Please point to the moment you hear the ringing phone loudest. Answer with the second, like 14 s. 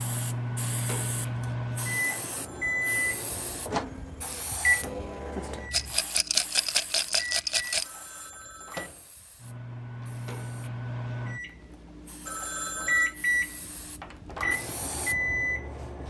13 s.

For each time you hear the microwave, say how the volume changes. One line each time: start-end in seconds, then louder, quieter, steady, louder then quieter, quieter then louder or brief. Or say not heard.
0.0-16.0 quieter then louder.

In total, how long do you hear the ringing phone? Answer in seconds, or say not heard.
3 s.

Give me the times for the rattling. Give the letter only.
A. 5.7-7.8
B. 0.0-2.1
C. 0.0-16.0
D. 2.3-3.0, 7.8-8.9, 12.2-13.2
A.